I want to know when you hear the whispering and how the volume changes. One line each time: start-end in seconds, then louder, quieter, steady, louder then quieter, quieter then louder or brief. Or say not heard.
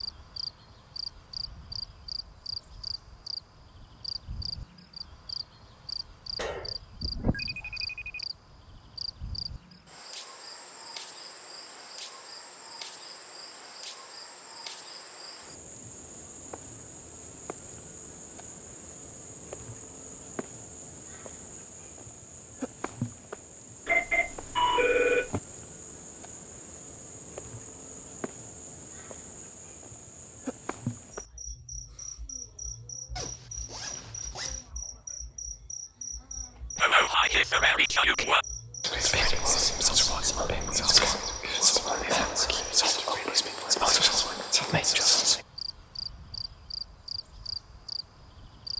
36.8-45.4 steady.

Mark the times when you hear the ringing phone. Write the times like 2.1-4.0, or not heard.
6.3-8.2, 23.9-25.4, 39.2-41.1.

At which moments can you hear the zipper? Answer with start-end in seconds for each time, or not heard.
33.1-34.7.